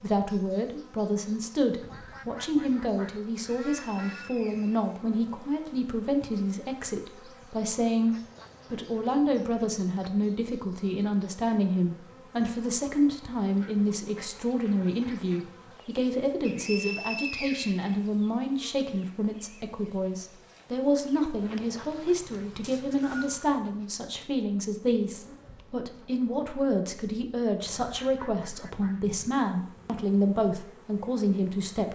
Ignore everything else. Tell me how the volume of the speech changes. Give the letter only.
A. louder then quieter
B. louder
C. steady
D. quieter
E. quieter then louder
C.